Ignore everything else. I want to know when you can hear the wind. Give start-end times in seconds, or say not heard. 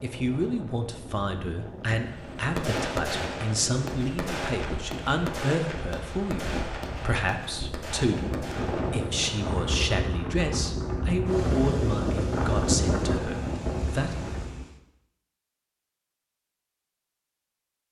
0.0-14.7.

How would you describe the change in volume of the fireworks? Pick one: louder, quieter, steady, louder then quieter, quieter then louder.
quieter.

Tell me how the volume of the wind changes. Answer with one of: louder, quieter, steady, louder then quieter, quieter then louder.
louder.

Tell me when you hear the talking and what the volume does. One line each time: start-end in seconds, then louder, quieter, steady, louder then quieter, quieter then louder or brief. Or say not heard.
0.0-14.2 steady.